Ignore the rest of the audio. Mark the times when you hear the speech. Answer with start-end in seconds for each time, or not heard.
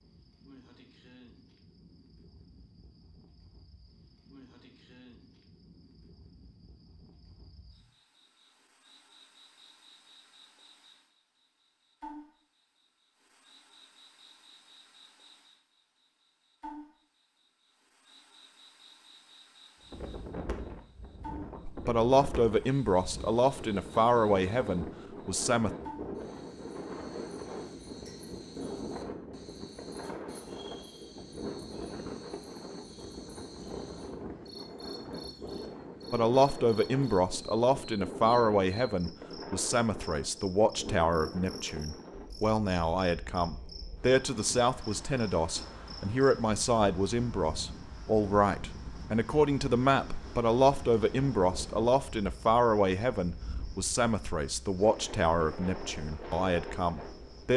21.6-25.7, 36.1-57.5.